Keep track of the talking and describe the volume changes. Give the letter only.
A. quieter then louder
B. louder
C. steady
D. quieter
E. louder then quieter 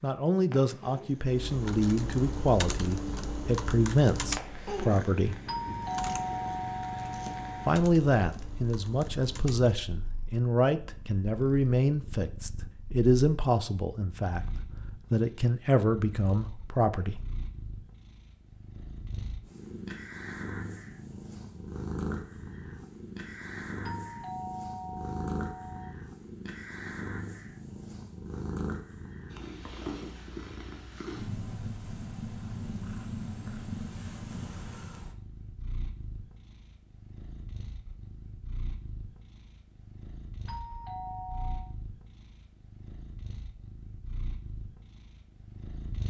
C.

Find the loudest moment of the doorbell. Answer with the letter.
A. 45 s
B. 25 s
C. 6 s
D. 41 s
C.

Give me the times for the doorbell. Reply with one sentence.
The doorbell can be heard from 5.5 to 7.8 s, from 23.8 to 25.9 s and from 40.5 to 41.8 s.